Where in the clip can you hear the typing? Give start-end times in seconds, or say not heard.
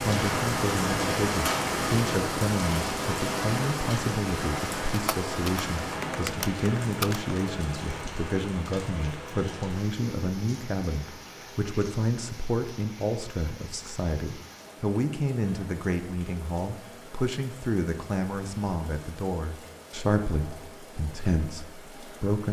4.8-7.3.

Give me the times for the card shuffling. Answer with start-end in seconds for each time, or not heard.
not heard.